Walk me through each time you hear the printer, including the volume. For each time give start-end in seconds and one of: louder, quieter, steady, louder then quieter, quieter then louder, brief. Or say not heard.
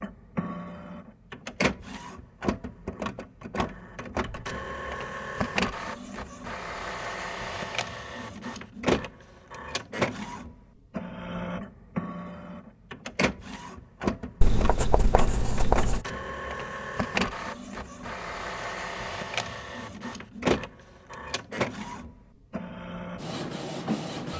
0.0-24.3 steady.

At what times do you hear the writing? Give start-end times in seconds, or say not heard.
14.4-16.1.